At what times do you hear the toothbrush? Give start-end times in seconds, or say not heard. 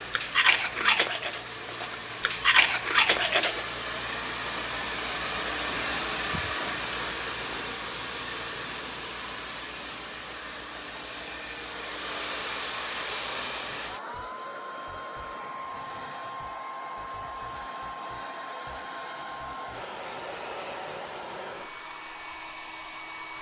0.0-3.6.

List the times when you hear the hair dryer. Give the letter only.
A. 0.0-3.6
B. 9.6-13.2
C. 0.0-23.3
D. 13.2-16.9
C.